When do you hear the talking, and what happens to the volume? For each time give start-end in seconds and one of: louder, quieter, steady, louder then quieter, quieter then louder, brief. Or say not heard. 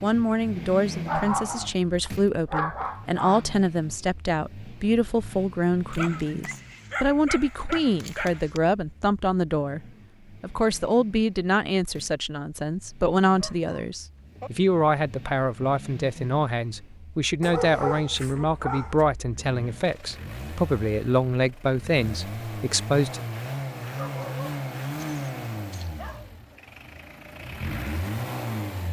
0.0-23.2 steady.